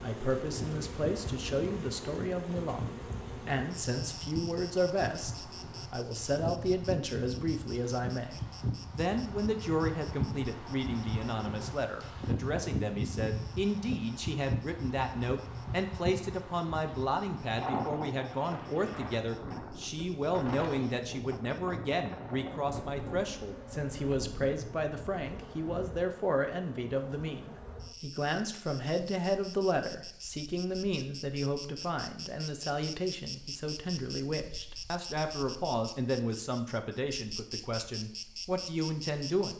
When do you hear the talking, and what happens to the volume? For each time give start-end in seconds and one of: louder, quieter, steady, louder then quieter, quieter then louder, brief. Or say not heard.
0.0-39.5 steady.